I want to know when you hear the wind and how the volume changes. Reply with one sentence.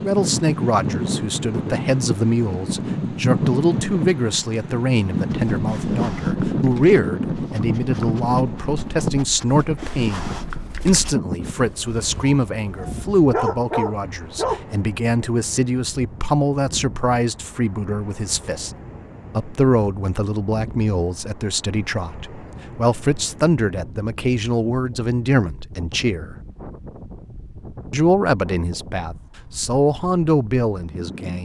The wind can be heard from 0.0 to 31.4 s, getting quieter.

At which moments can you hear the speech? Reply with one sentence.
The speech can be heard from 0.0 to 18.7 s, from 19.3 to 26.4 s and from 27.9 to 31.4 s.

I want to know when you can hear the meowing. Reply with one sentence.
You can't hear the meowing here.